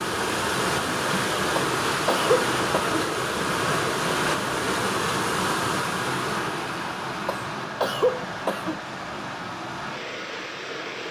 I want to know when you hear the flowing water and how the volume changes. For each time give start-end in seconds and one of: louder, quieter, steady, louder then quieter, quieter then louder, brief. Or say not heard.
0.0-11.0 quieter.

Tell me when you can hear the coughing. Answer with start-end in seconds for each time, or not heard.
1.6-3.0, 7.2-8.8.